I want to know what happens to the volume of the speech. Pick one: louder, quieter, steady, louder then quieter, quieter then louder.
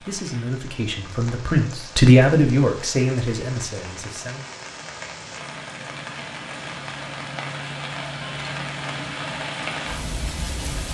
louder then quieter.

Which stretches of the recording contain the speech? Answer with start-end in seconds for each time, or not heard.
0.0-4.5.